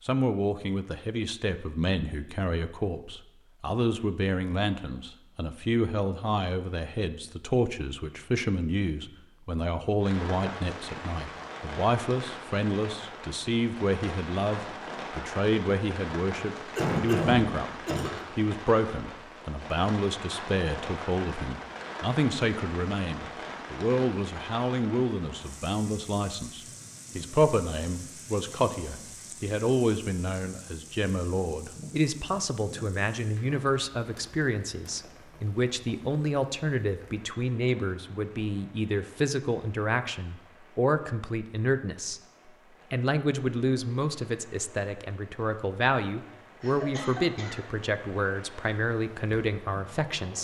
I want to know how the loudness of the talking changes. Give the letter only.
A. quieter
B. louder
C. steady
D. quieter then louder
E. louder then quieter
C.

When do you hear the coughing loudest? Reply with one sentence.
The loudest moment of the coughing is at 17 seconds.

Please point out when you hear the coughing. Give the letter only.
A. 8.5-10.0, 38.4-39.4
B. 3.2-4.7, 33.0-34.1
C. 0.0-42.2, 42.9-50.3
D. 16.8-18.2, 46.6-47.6
D.